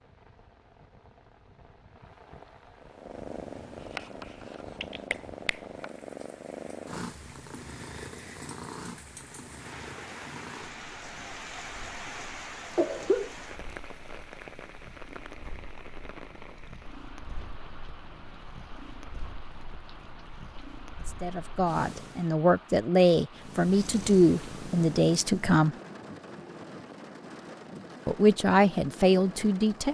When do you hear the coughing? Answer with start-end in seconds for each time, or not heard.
12.8-13.3.